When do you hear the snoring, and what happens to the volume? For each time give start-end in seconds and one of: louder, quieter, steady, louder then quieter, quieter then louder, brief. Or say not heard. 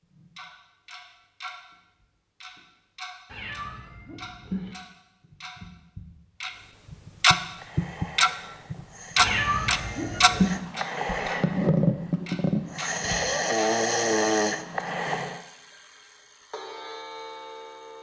7.5-15.4 louder.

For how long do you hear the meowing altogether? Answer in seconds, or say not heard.
3 s.